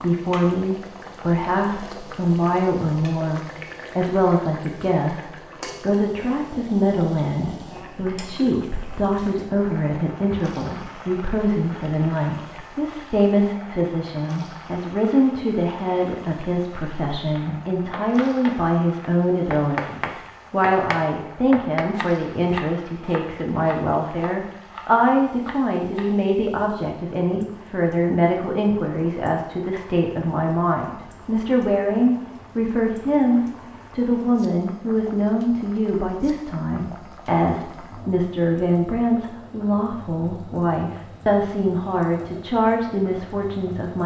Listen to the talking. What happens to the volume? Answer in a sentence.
The loudness of the talking stays about the same.